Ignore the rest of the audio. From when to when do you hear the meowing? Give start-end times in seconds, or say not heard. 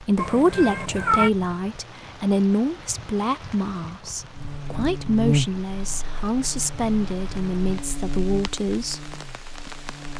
0.1-1.3.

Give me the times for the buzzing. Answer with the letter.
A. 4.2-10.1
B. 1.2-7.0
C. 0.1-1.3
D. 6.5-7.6
A.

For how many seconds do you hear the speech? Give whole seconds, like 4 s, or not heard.
9 s.